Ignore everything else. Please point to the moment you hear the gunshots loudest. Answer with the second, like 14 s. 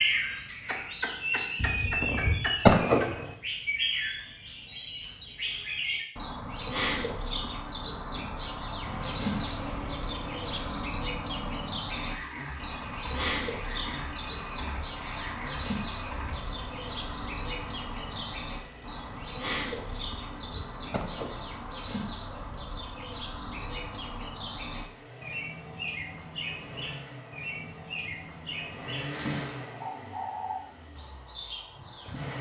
3 s.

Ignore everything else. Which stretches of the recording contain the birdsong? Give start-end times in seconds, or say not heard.
0.0-32.3.